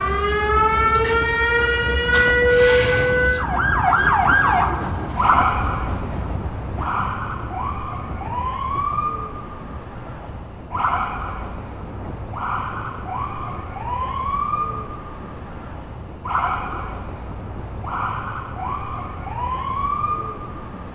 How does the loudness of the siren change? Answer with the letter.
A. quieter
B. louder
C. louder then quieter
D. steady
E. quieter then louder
A.